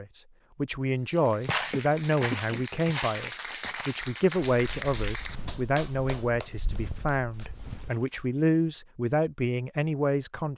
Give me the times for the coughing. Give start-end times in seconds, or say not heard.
1.7-2.6.